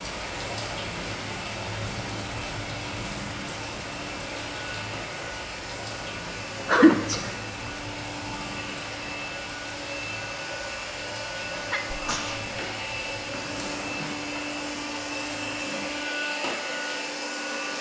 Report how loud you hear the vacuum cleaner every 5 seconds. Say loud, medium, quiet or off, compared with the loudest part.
medium, medium, loud, loud.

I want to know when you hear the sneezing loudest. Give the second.
7 s.